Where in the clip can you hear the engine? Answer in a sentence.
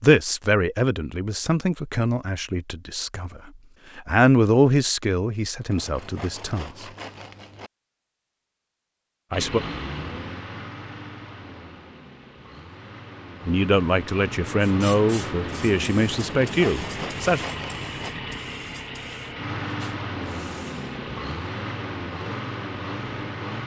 You can hear the engine from 9.3 to 23.6 s.